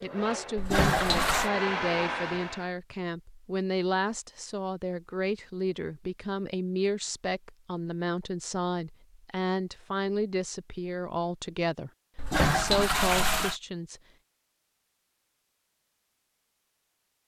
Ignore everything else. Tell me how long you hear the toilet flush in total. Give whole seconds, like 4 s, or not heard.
2 s.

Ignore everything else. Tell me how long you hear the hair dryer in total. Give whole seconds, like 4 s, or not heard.
3 s.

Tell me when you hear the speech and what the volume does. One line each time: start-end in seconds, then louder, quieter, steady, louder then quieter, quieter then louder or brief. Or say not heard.
0.0-14.0 steady.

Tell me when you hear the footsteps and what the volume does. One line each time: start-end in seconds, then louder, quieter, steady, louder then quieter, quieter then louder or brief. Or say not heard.
not heard.